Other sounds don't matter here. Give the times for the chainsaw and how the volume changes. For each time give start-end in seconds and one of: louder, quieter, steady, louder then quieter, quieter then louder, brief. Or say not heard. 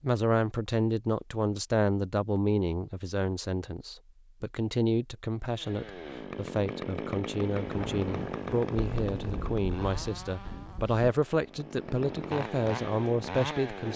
5.5-13.9 quieter then louder.